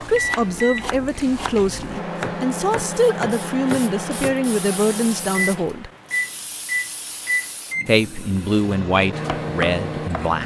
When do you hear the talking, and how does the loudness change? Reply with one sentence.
The talking can be heard from 0.1 to 5.9 s, at a steady volume; and briefly from 7.8 to 10.4 s.